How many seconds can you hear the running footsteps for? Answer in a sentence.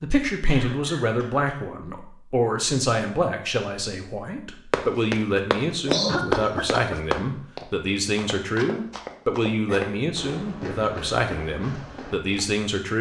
The running footsteps can be heard for 8 seconds in total.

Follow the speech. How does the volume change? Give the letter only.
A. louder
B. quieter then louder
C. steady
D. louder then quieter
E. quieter
C.